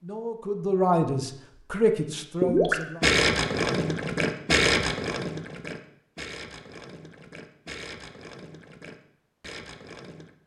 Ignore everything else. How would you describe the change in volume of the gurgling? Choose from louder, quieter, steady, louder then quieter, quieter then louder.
quieter.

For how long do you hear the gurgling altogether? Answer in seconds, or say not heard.
8 s.